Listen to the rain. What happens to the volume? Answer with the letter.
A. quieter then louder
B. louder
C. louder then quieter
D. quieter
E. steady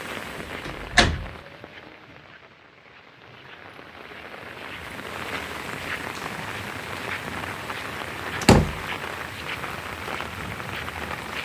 B.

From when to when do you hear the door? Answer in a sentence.
The door can be heard from 0.3 to 1.4 s and from 8.4 to 8.8 s.